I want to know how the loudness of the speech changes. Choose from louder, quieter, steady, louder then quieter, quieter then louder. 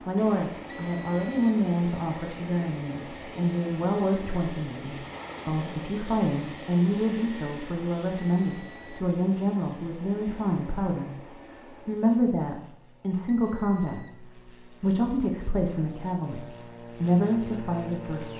steady.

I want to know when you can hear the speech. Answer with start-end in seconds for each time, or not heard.
0.1-18.3.